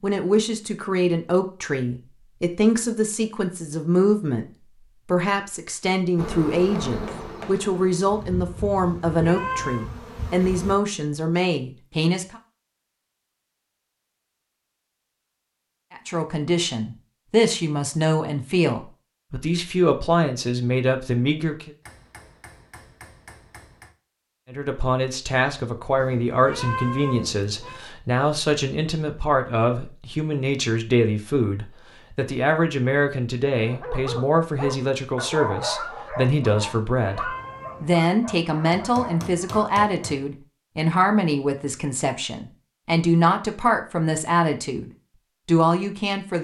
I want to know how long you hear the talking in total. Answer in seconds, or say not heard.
40 s.